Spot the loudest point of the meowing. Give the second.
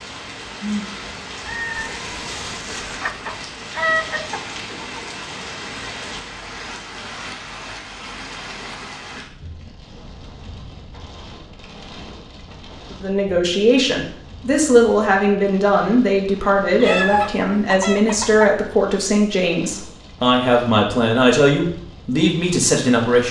17 s.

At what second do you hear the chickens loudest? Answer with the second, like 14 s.
4 s.